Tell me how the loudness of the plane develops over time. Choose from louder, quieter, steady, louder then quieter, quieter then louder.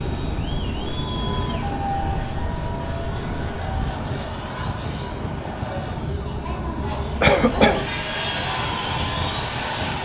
quieter then louder.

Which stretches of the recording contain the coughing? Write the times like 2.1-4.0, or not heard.
7.2-7.8.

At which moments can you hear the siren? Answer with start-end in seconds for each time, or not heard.
0.0-10.0.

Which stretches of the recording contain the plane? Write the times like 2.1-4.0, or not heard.
0.0-10.0.